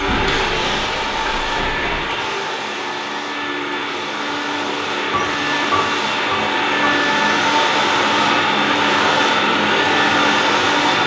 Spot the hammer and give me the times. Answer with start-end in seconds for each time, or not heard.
0.0-2.0, 5.1-7.0.